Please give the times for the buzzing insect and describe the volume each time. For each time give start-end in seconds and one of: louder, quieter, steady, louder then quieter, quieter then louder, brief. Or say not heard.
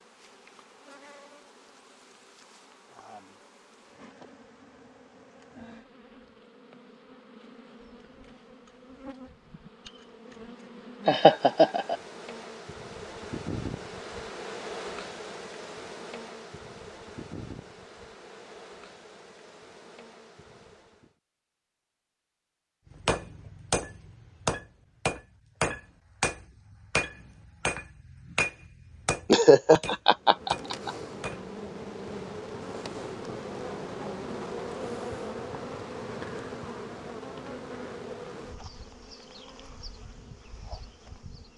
0.0-21.1 louder then quieter
30.1-41.5 quieter.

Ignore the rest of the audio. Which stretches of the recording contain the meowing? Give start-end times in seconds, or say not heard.
not heard.